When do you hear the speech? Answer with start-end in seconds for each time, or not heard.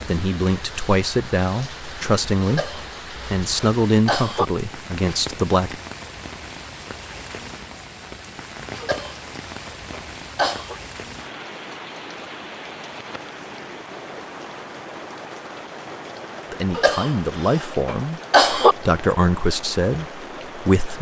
0.1-5.8, 16.5-20.9.